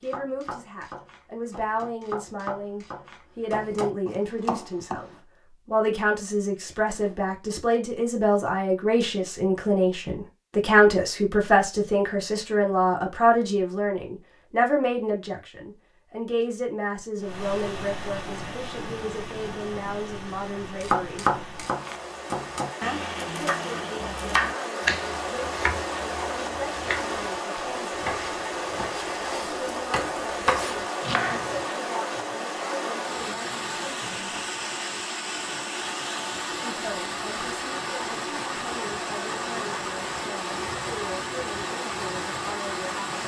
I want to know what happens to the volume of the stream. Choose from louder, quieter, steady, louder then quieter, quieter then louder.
louder.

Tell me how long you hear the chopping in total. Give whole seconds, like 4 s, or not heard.
16 s.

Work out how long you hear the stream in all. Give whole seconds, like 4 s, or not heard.
26 s.